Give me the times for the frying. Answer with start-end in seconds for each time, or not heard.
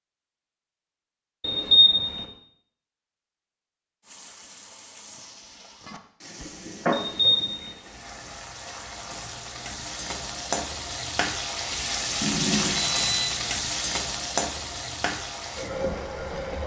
4.0-16.6.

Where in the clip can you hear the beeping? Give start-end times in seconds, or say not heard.
1.4-2.2, 6.9-7.8, 12.2-13.6.